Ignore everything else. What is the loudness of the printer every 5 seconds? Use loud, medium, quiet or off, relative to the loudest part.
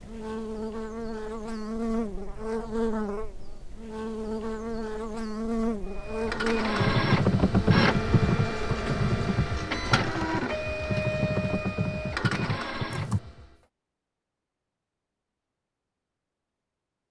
off, loud, loud, off.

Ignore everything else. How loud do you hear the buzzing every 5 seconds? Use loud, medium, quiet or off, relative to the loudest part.
loud, loud, off, off.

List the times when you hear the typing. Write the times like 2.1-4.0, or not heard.
6.8-13.2.